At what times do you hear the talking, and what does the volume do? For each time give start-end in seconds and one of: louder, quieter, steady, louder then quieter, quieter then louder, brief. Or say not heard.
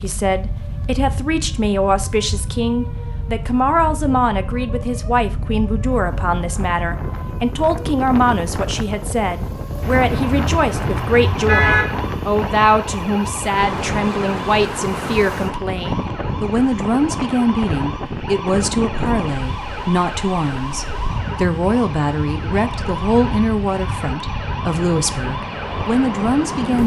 0.0-26.8 steady.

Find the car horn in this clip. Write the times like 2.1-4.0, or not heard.
9.8-11.8.